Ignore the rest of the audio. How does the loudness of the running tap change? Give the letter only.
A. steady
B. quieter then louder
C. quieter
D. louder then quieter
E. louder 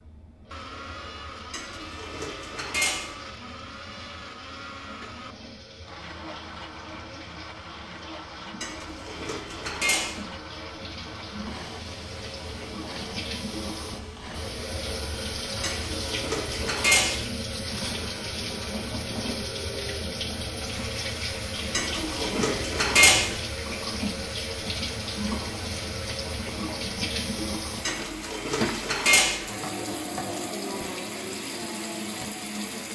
E.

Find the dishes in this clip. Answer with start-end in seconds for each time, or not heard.
1.5-3.1, 8.6-10.2, 15.6-17.2, 21.7-23.4, 27.9-29.4.